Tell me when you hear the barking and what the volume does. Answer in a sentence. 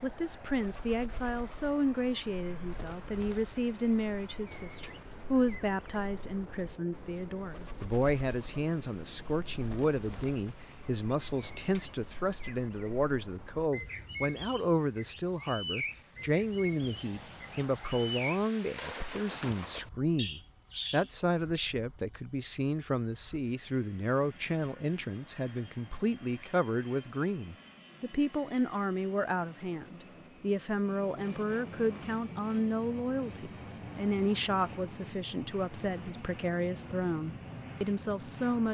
The barking can't be heard in this clip.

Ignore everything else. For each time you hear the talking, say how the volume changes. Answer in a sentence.
The talking can be heard from 0.0 to 38.6 s, at a steady volume.